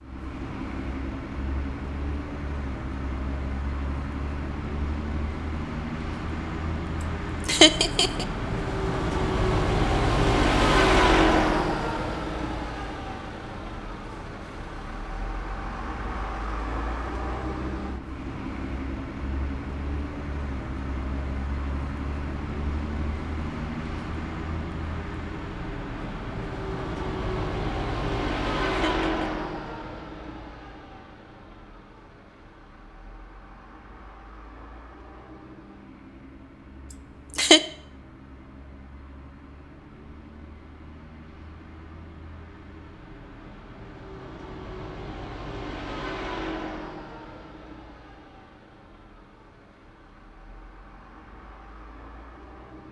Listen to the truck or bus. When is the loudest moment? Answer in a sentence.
The loudest moment of the truck or bus is at 11 seconds.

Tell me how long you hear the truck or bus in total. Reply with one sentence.
The truck or bus can be heard for 53 seconds in total.